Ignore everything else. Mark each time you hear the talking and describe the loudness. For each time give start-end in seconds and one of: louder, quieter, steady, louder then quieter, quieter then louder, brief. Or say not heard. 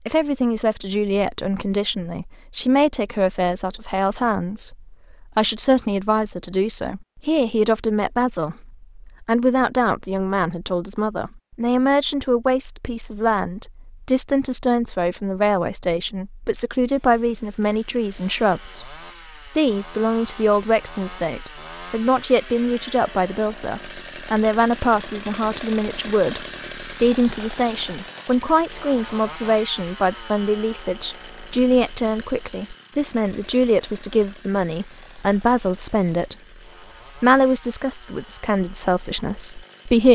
0.1-36.4 steady
37.1-40.1 brief.